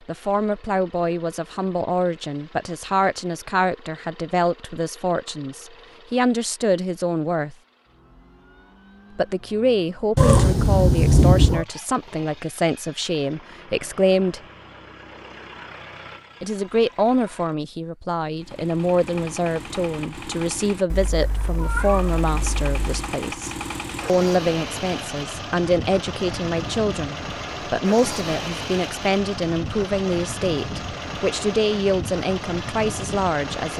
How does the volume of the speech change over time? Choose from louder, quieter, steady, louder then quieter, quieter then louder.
steady.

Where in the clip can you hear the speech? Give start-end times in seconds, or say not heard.
0.1-7.5, 9.2-14.4, 16.4-33.7.